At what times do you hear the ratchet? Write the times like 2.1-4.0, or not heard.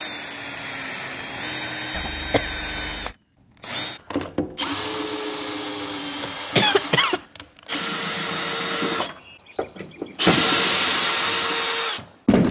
not heard.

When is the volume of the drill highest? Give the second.
11 s.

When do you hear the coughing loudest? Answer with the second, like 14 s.
7 s.